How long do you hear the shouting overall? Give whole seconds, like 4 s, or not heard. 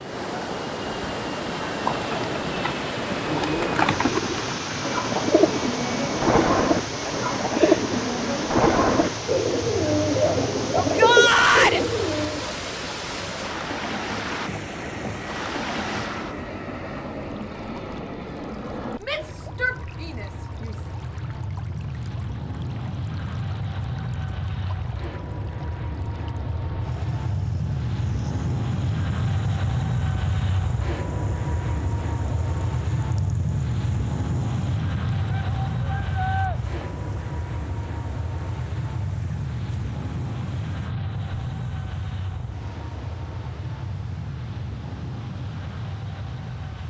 4 s.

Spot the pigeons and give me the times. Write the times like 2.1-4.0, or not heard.
1.6-12.5.